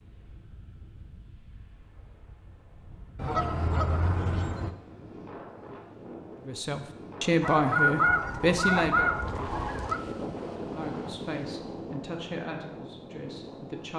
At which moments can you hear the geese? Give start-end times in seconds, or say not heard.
3.1-4.7, 7.4-10.0.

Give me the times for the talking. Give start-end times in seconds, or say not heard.
6.5-9.1, 10.6-13.9.